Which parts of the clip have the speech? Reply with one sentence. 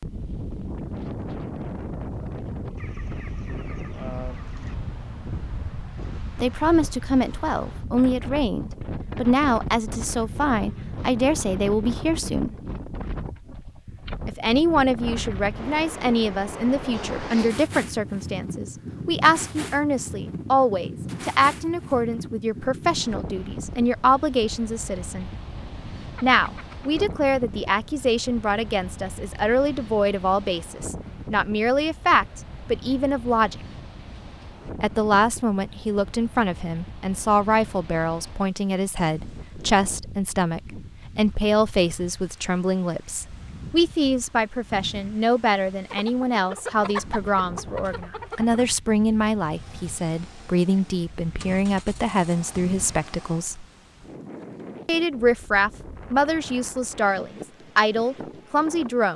The speech can be heard from 6.4 to 12.6 s, from 14.2 to 25.3 s, from 26.2 to 33.5 s, from 34.8 to 53.6 s and from 54.9 to 59.1 s.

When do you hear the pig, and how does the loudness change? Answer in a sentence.
The pig can't be heard in this clip.